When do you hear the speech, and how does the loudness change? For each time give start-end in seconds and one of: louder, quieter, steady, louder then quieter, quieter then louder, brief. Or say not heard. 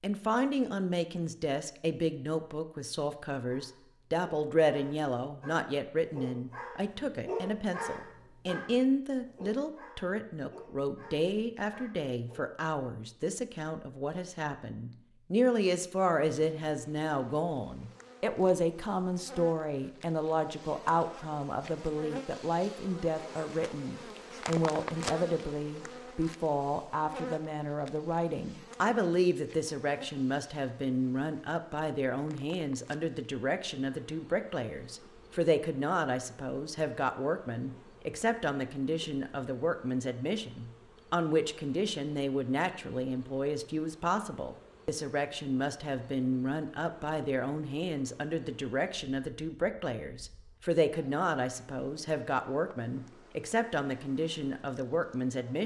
0.0-55.6 steady.